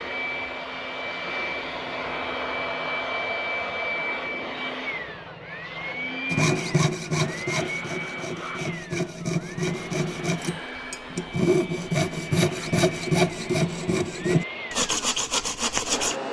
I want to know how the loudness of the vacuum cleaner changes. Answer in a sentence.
The volume of the vacuum cleaner goes down.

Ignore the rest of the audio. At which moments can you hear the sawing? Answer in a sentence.
You can hear the sawing from 6.3 to 16.1 s.